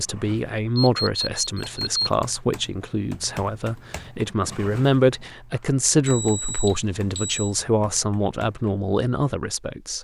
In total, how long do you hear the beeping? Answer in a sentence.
The beeping can be heard for 3 seconds in total.